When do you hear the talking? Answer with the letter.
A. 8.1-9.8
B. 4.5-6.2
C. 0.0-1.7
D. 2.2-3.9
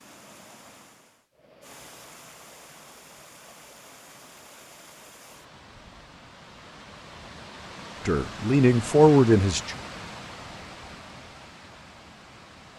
A.